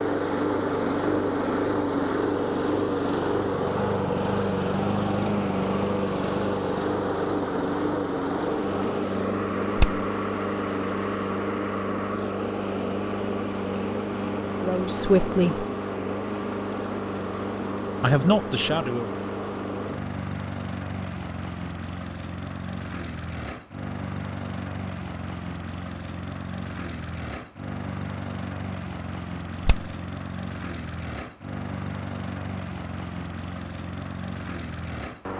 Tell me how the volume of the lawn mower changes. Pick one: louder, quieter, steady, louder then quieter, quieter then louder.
quieter.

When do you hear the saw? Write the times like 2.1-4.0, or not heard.
not heard.